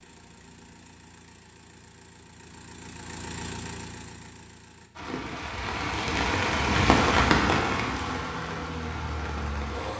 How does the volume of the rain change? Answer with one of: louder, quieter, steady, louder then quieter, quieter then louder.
louder then quieter.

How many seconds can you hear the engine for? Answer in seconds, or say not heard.
7 s.